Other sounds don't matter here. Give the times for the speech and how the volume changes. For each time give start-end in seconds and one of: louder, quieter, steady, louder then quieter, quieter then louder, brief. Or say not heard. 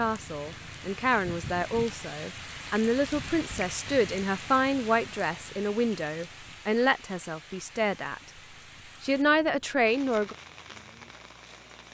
0.0-8.2 steady
9.0-10.3 brief.